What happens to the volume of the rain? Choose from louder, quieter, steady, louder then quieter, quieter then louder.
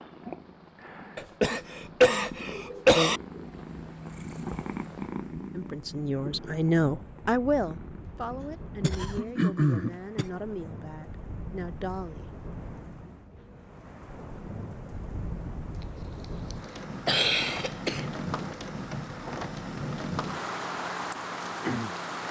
louder.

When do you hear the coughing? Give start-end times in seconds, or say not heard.
1.1-3.2, 8.4-10.2, 16.5-18.1.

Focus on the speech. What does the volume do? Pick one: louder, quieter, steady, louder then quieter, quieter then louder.
quieter.